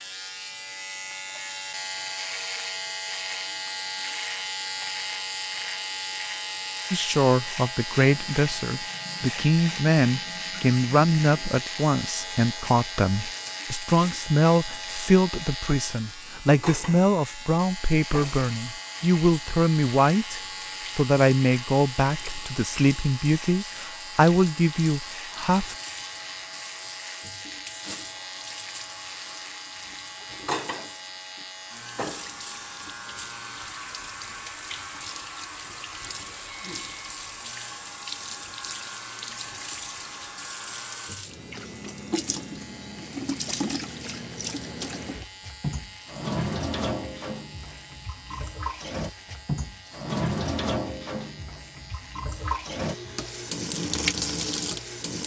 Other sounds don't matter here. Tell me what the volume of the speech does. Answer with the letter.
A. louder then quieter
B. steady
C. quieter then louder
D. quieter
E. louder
B.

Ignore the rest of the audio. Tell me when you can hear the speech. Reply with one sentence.
The speech can be heard from 6.9 to 25.8 s.